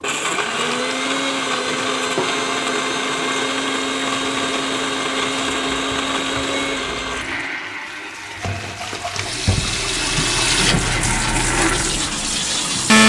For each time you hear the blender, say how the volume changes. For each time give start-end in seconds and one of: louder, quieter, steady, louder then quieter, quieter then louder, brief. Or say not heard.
0.0-13.0 quieter then louder.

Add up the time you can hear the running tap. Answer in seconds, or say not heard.
13 s.